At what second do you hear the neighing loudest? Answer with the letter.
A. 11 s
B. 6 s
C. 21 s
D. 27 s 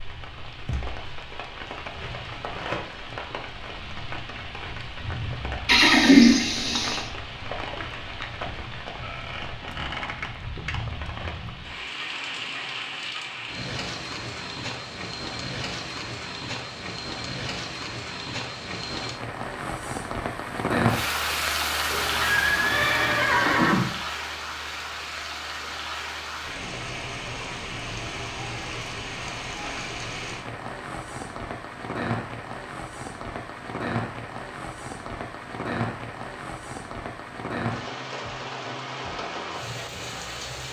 B.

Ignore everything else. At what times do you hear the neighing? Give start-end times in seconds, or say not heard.
5.7-7.0, 21.9-23.9.